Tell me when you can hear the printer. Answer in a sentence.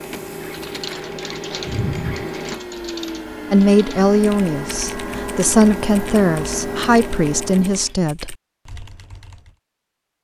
The printer can be heard from 0.0 to 8.0 s.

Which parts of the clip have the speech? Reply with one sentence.
The speech can be heard from 3.5 to 8.3 s.